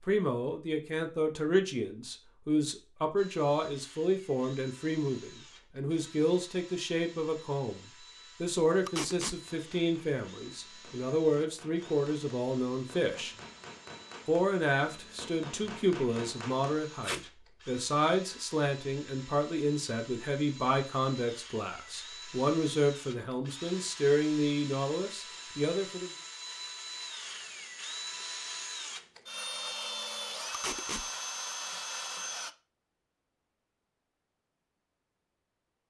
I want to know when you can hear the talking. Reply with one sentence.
The talking can be heard from 0.0 to 7.8 s, from 8.4 to 13.3 s and from 14.2 to 26.1 s.